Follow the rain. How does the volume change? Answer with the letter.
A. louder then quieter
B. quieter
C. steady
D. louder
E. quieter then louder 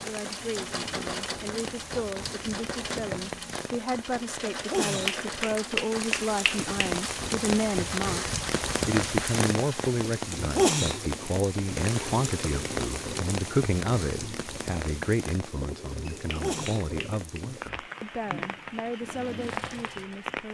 A.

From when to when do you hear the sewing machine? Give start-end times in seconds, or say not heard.
0.0-20.4.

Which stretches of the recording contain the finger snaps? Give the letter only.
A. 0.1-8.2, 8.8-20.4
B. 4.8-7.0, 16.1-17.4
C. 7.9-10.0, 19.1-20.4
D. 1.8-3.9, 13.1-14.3
B.